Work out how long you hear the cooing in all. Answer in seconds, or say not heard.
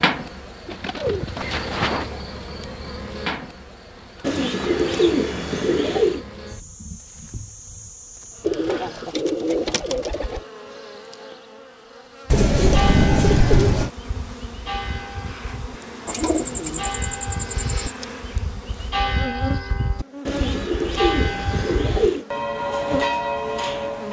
11 s.